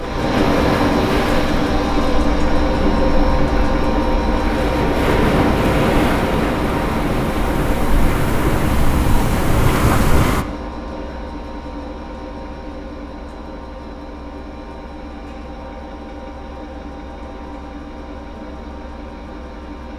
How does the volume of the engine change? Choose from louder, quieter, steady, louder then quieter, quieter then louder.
quieter.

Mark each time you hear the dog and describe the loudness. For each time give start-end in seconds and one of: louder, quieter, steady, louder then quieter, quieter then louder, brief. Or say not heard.
not heard.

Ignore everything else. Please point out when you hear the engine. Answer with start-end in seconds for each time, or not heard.
0.0-19.9.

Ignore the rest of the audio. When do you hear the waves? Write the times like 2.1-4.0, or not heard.
0.0-10.4.